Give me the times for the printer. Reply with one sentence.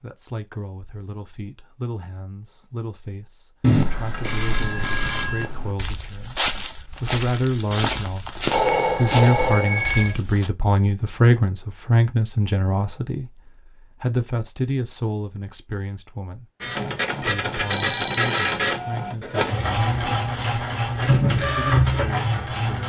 The printer can be heard from 16.6 to 22.8 s.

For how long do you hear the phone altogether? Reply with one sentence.
You can hear the phone for 5 seconds altogether.